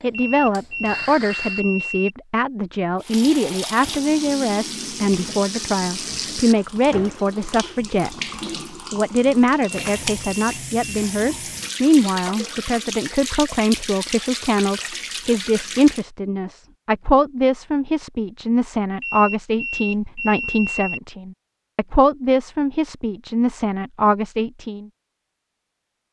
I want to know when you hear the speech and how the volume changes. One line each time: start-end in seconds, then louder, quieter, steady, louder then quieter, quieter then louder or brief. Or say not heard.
0.0-24.9 steady.